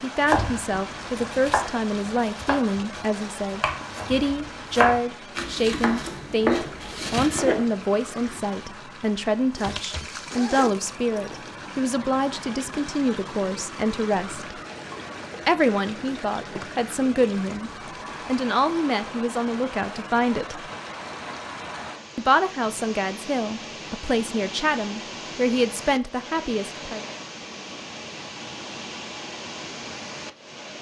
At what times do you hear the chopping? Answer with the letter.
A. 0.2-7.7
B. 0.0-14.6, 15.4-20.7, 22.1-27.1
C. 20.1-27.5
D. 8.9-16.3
A.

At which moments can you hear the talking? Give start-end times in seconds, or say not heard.
0.0-14.6, 15.4-20.7, 22.1-27.1.